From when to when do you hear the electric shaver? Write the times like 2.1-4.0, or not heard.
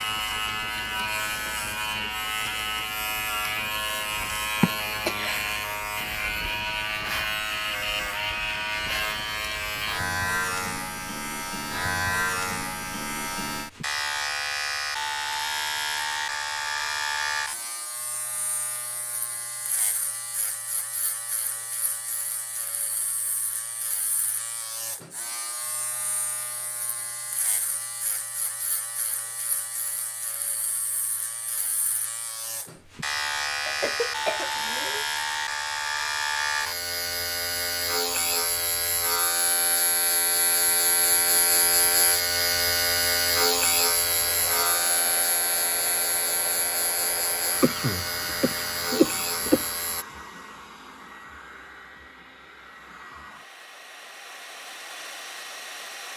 0.0-50.0.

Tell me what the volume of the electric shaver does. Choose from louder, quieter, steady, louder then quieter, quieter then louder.
quieter then louder.